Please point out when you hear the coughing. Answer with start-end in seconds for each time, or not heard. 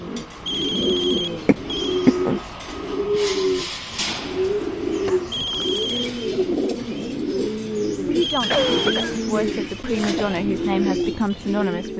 1.4-2.4, 5.0-6.0, 8.5-9.2.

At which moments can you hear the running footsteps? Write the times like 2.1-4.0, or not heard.
not heard.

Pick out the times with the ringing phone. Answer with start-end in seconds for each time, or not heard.
0.5-2.1, 5.3-6.1, 8.2-9.1.